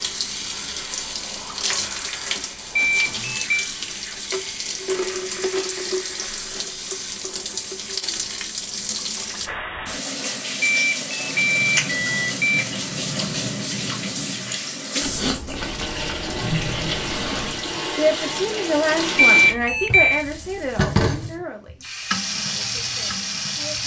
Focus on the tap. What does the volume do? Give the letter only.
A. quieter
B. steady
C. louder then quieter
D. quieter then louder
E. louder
B.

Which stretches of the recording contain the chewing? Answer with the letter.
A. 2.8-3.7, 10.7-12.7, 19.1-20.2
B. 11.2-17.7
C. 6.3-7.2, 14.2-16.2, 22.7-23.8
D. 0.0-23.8
B.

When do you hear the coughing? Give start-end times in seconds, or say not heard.
not heard.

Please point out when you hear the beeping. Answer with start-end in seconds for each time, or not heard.
2.8-3.7, 10.7-12.7, 19.1-20.2.